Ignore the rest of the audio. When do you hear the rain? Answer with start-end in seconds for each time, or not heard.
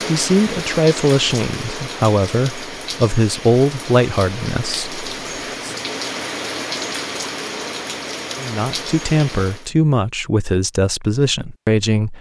0.0-9.7.